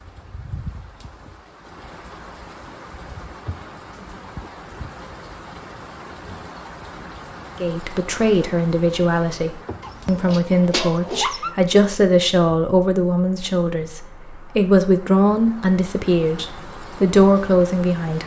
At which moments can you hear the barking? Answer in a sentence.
You can hear the barking from 9.8 to 11.6 s.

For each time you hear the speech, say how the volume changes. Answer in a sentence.
You can hear the speech from 7.6 to 18.2 s, at a steady volume.